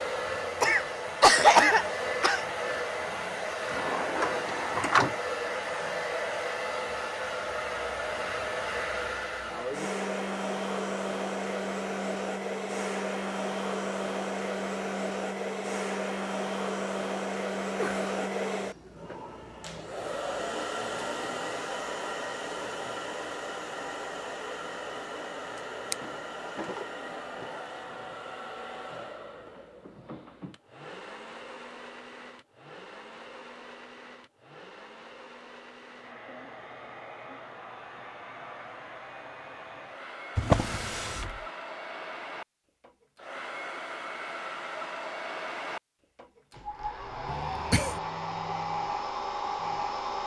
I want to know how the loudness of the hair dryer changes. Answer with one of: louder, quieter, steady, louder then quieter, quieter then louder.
quieter then louder.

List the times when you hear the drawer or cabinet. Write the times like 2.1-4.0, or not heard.
3.6-5.2, 25.9-27.4, 40.4-41.5.